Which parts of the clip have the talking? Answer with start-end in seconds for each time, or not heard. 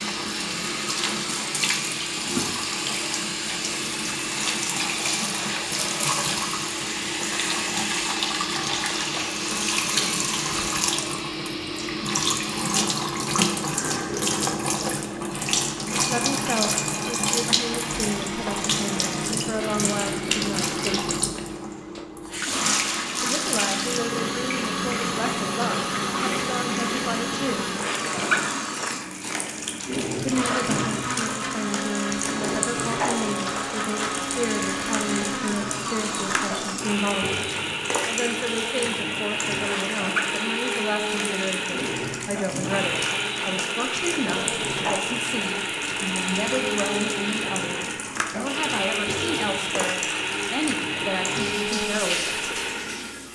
16.1-20.8, 23.2-27.6, 30.2-37.4, 38.0-52.5.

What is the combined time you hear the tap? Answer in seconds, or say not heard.
53 s.